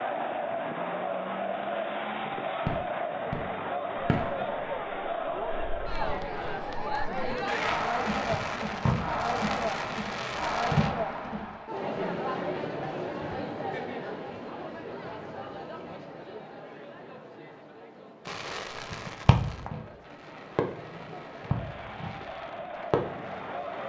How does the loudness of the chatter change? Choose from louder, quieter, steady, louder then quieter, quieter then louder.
quieter.